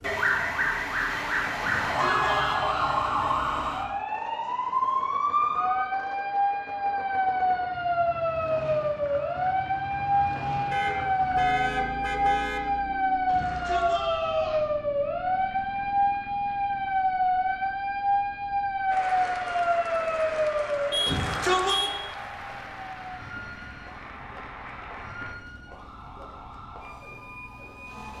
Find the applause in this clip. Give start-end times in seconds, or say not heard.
18.9-25.4.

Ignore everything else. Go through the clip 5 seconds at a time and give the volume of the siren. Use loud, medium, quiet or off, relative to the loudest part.
loud, loud, loud, loud, medium, quiet.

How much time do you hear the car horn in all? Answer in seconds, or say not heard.
4 s.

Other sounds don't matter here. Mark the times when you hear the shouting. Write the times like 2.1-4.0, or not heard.
1.6-3.0, 13.2-14.7, 21.1-21.8.